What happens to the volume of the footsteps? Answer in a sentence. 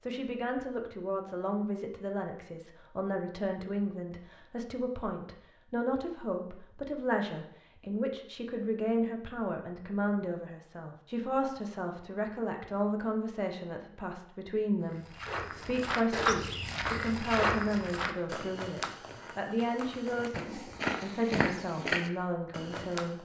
The volume of the footsteps goes down, then up.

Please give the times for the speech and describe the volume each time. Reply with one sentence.
The speech can be heard from 0.0 to 23.1 s, at a steady volume.